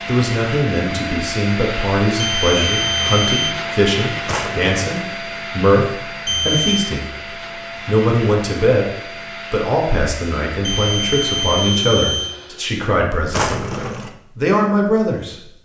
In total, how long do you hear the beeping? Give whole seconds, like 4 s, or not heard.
4 s.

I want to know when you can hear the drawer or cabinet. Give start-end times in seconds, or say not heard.
4.2-4.8, 13.3-14.2.